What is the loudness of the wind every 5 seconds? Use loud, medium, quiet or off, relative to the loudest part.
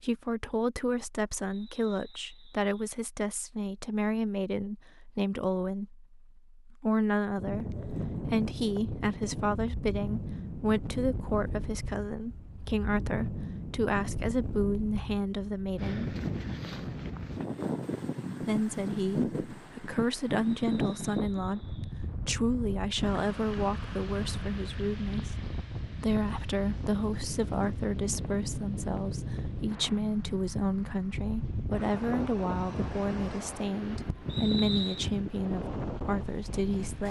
off, loud, loud, loud, loud, loud, loud, loud.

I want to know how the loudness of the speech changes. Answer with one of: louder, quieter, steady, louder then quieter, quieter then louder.
steady.